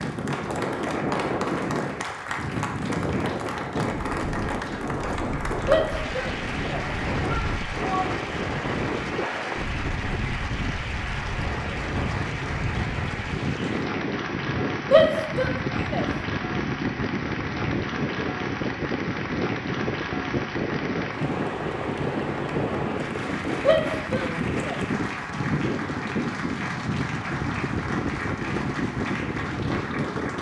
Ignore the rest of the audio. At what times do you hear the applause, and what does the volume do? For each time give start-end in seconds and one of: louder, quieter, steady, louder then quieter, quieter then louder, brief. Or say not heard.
0.0-30.3 steady.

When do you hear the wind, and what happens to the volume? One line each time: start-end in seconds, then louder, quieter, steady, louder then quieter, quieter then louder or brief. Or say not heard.
0.0-30.3 steady.